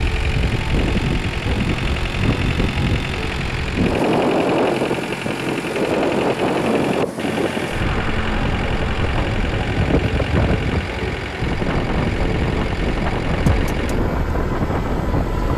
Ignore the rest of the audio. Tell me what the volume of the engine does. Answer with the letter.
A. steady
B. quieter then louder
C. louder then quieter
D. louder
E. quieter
A.